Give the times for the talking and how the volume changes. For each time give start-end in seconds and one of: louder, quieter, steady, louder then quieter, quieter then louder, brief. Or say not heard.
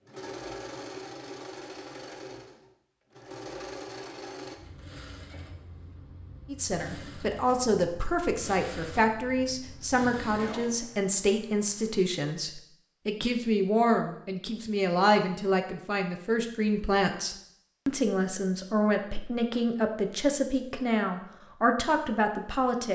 6.5-22.8 steady.